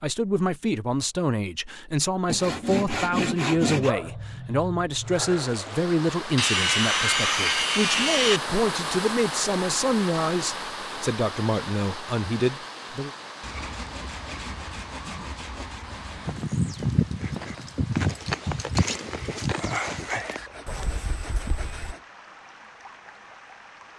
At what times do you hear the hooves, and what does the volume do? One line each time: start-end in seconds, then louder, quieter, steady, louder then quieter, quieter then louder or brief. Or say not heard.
16.2-21.9 quieter.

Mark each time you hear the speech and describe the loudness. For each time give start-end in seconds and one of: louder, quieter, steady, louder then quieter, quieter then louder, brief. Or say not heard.
0.0-13.1 steady.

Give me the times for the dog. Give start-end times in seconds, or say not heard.
3.8-5.5.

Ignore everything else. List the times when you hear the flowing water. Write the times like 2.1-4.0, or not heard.
5.0-23.9.